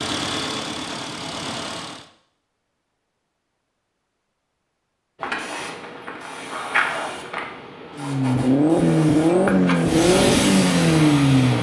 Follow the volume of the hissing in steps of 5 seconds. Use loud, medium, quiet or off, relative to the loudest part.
off, medium, loud.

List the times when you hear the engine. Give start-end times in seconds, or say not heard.
0.0-2.0, 8.0-11.5.